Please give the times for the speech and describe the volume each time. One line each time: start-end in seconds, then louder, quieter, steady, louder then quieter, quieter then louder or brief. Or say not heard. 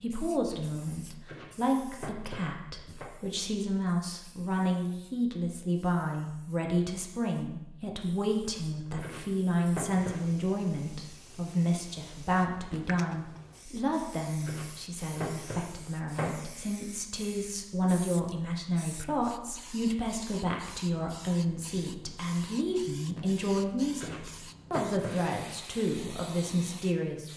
0.0-27.3 steady.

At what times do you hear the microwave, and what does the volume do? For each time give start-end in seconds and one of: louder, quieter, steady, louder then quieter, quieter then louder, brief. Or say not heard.
not heard.